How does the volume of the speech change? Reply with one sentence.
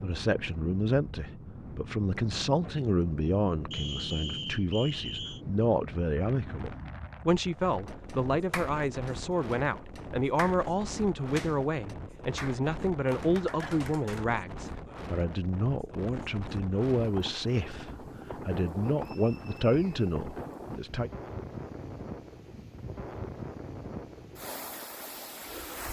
The loudness of the speech stays about the same.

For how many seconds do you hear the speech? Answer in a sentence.
You can hear the speech for 21 seconds altogether.